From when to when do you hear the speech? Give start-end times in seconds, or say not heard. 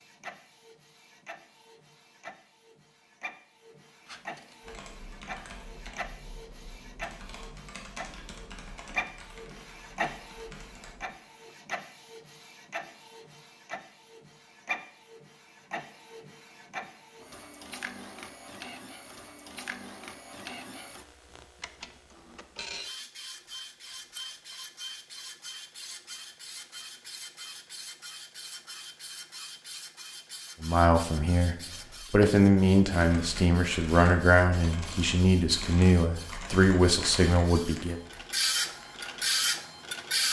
30.6-38.0.